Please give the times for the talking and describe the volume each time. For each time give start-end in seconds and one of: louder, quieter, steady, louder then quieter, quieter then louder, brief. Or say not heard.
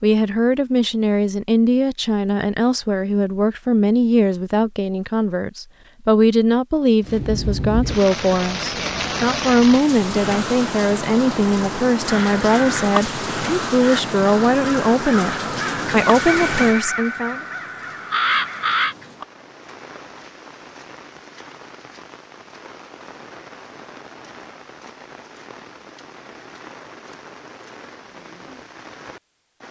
0.0-17.4 steady.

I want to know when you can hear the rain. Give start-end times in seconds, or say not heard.
7.0-29.6.